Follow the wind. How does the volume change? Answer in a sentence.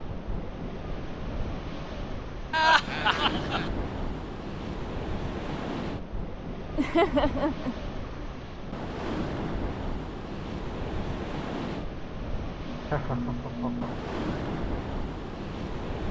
The loudness of the wind stays about the same.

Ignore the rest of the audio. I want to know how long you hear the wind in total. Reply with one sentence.
The wind can be heard for 16 seconds in total.